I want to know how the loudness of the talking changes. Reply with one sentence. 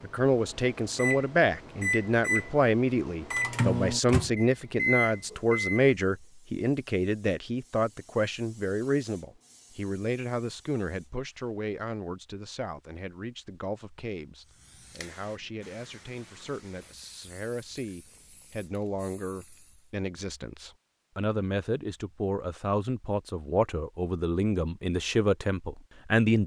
The volume of the talking goes down, then up.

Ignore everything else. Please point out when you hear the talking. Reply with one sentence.
The talking can be heard from 0.0 to 26.4 s.